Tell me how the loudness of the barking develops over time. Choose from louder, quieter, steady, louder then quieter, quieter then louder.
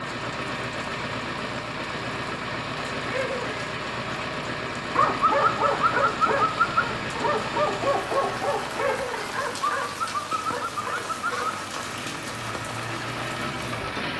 quieter.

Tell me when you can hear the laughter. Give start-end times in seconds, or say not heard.
3.0-3.6, 8.8-9.3.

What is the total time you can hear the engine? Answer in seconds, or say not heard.
14 s.